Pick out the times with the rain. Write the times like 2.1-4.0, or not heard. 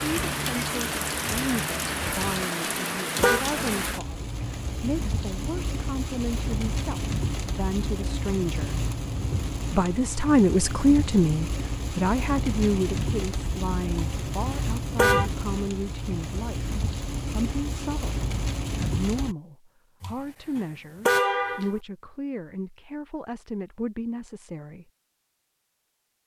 0.0-19.4.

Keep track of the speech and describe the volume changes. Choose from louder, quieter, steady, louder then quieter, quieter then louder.
louder then quieter.